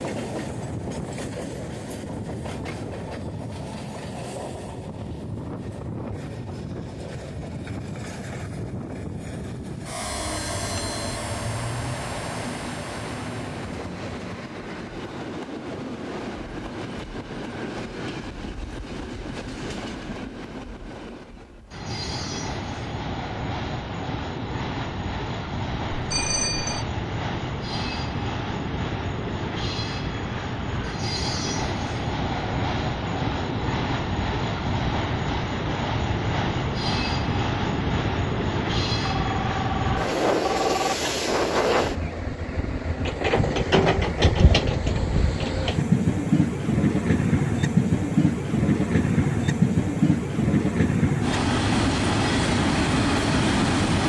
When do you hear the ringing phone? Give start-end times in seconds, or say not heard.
10.0-11.2, 25.9-26.9, 39.0-41.0.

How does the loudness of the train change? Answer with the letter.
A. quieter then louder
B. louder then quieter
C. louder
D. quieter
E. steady
C.